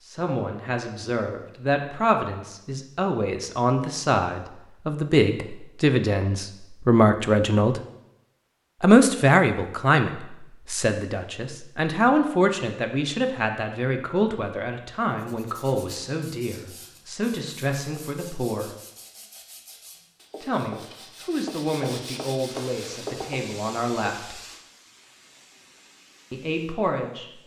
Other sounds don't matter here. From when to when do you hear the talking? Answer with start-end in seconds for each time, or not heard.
0.0-7.8, 8.8-18.7, 20.4-24.4, 26.3-27.2.